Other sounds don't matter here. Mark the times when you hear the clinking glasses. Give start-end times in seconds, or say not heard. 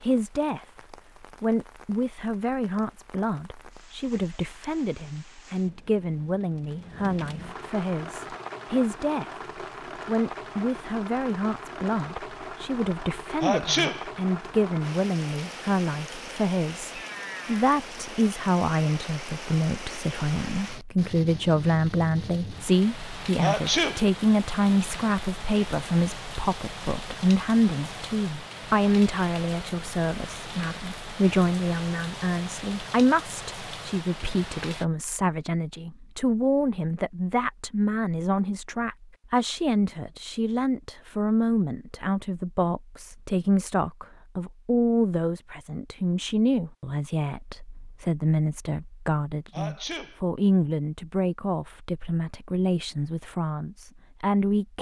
not heard.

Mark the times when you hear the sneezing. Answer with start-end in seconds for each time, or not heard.
13.4-14.1, 23.4-24.1, 49.5-50.2.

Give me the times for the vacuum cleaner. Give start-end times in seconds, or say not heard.
not heard.